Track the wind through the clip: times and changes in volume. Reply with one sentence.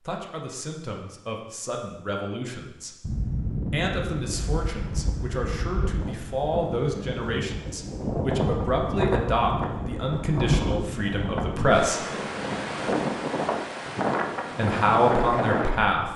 You can hear the wind from 3.0 to 16.1 s, getting louder.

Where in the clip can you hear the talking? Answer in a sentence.
The talking can be heard from 0.0 to 12.0 s and from 14.6 to 16.1 s.